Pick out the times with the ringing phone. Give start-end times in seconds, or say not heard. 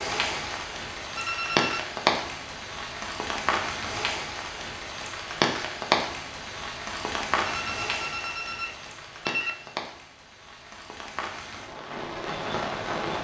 1.1-1.9, 7.5-9.7.